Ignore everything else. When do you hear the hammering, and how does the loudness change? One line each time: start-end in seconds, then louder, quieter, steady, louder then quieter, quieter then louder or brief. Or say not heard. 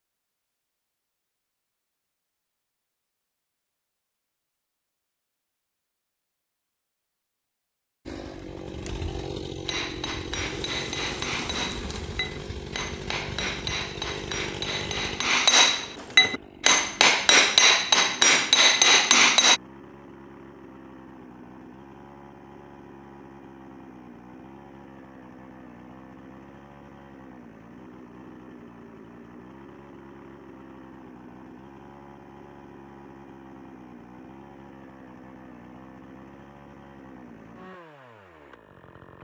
9.7-19.6 louder.